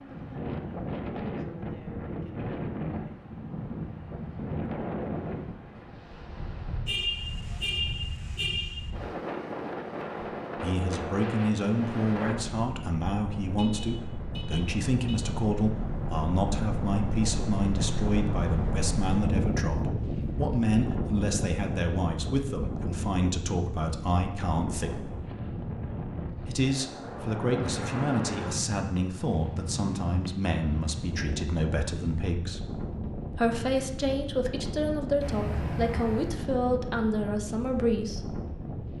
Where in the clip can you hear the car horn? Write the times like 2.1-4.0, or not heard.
6.8-8.9, 13.4-15.3, 35.2-36.4.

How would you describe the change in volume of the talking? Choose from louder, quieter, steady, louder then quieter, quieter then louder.
steady.